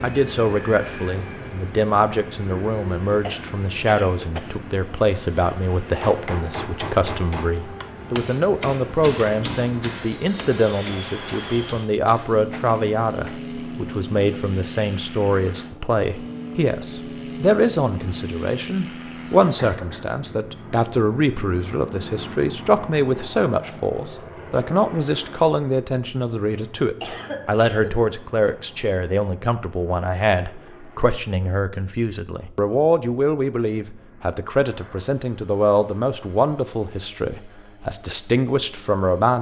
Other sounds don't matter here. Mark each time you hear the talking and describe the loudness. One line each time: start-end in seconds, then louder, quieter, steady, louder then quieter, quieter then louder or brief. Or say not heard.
0.0-39.3 steady.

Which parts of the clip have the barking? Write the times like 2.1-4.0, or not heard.
not heard.